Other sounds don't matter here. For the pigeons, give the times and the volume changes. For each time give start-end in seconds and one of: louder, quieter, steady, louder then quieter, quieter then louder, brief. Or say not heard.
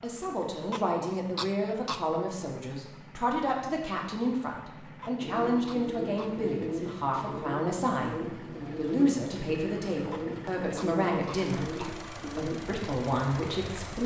5.2-12.6 steady.